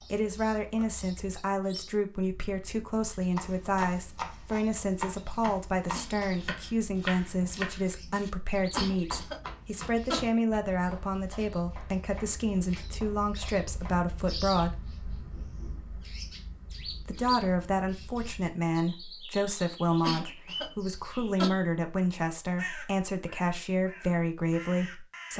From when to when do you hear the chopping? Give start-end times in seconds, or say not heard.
3.4-13.9.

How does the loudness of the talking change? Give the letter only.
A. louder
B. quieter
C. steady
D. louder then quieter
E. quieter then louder
C.